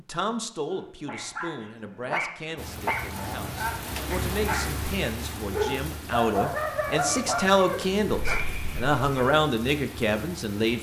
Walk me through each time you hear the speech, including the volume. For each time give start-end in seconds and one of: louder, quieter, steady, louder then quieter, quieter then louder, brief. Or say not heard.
0.0-10.7 louder.